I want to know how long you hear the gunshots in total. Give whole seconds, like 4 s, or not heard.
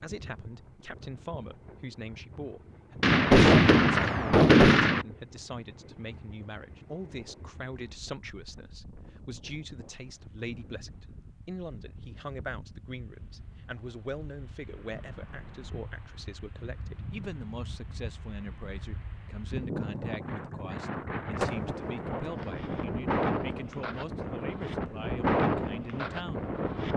3 s.